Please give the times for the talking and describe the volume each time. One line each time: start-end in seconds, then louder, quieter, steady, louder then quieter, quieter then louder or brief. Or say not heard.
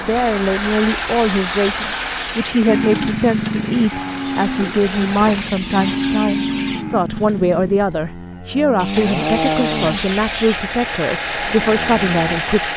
0.0-12.7 steady.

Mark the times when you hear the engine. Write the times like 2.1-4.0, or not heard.
0.0-5.5, 7.2-12.7.